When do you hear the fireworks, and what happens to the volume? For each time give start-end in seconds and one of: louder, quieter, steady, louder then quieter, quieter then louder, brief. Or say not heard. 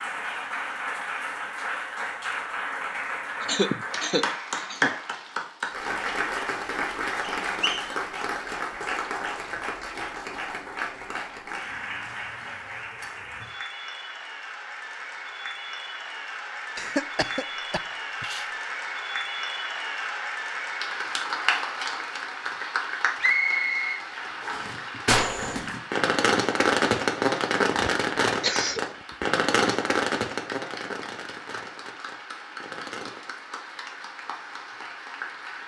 24.5-33.3 quieter.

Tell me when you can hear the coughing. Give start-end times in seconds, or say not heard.
3.4-5.0, 16.8-18.5, 27.8-29.2.